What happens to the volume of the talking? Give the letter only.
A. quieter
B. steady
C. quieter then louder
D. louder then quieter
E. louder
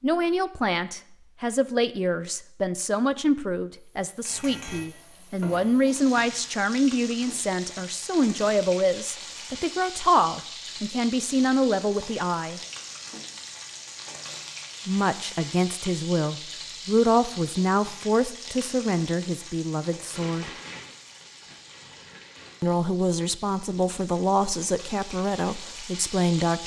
B.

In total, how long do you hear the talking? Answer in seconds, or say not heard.
22 s.